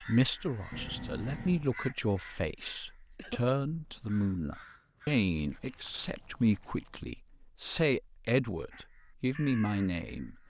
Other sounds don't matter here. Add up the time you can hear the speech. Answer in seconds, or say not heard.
10 s.